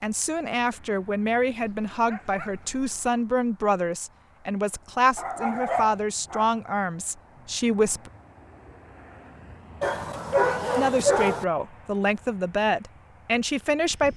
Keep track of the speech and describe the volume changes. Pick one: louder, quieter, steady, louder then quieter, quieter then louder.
steady.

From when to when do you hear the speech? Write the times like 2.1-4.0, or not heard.
0.0-8.1, 10.8-14.1.